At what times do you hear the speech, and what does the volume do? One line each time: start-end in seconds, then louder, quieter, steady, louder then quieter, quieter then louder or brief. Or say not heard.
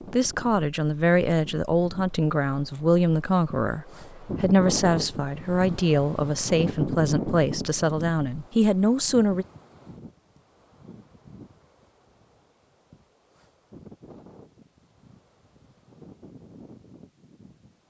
0.1-9.4 steady.